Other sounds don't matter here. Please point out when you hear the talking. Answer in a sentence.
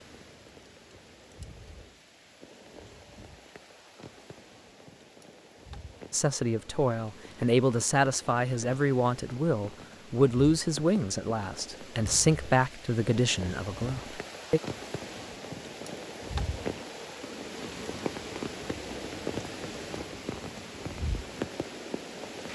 The talking can be heard from 6.1 to 14.6 s.